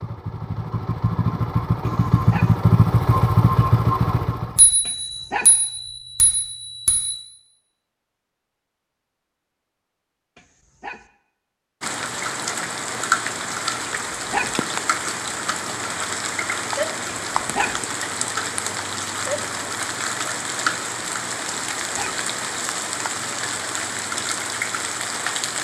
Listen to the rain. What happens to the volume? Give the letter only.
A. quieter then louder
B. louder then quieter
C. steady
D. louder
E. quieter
C.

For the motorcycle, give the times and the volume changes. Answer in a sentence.
The motorcycle can be heard from 0.0 to 4.7 s, getting louder.